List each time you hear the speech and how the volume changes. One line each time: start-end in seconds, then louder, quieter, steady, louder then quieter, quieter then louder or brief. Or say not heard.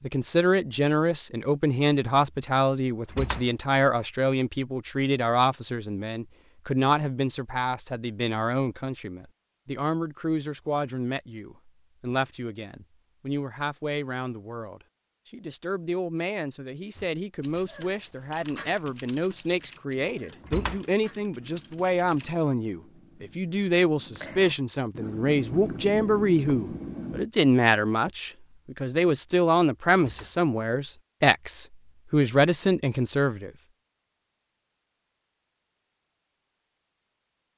0.0-33.5 quieter then louder.